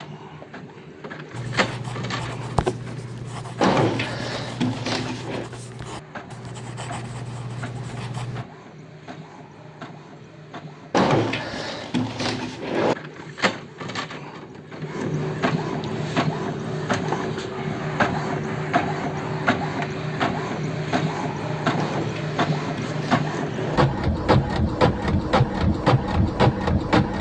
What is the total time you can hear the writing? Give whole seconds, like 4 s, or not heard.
7 s.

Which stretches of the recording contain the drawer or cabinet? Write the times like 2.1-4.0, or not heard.
3.6-5.5, 10.9-12.9, 21.8-23.8.